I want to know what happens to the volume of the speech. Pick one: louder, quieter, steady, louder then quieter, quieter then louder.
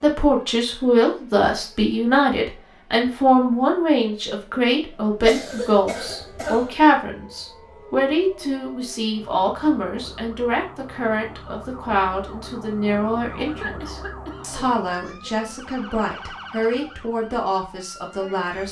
quieter.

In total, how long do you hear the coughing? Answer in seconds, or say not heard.
3 s.